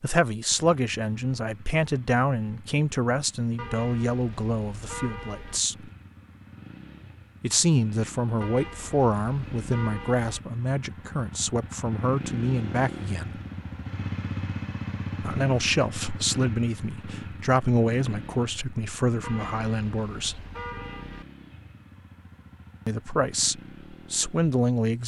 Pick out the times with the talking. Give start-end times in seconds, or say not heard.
0.0-5.9, 7.4-13.3, 15.2-20.4, 22.9-25.0.